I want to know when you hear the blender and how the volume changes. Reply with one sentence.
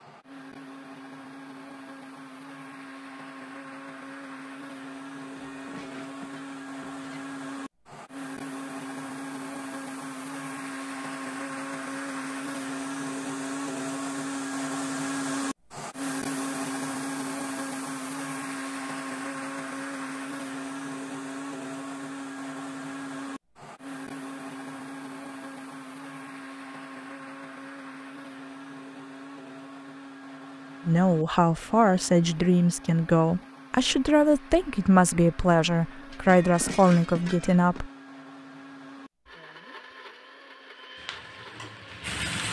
The blender can be heard from 0.0 to 42.1 s, getting louder then quieter.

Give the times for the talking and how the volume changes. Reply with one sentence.
You can hear the talking from 30.9 to 37.9 s, at a steady volume.